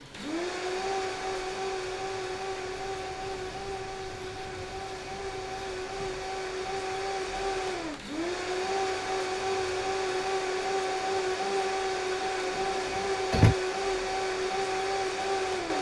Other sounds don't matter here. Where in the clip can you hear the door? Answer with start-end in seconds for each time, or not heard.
12.6-13.6.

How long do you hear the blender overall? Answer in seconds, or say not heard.
16 s.